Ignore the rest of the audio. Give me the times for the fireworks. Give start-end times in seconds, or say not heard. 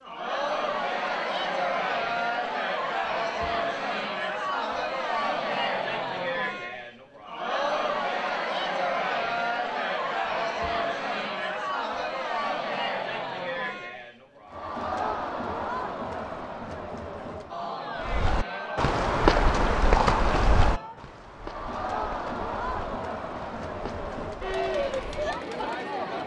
not heard.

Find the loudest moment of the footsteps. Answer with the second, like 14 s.
19 s.